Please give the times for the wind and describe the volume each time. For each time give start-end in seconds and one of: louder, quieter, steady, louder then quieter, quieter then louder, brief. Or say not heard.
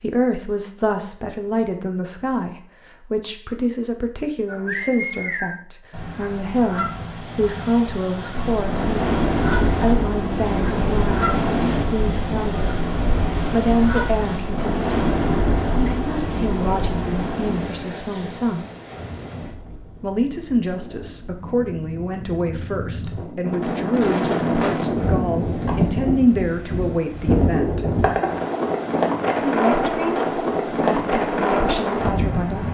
8.3-32.7 quieter then louder.